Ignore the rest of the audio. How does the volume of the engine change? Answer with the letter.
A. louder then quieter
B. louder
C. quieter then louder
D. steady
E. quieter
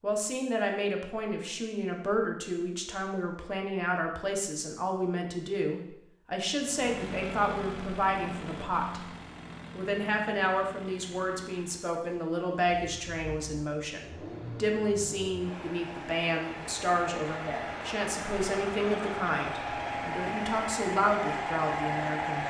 C.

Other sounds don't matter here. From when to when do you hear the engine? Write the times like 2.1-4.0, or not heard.
6.5-22.4.